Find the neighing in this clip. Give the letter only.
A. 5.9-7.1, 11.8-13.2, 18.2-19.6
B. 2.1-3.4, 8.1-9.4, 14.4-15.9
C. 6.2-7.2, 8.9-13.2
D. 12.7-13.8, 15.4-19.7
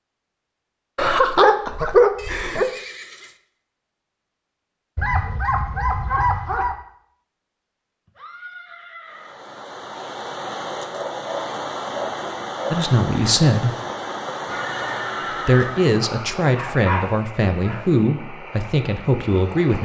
B.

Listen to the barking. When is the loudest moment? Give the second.
2 s.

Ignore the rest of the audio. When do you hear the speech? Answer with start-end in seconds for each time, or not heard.
12.7-13.8, 15.4-19.7.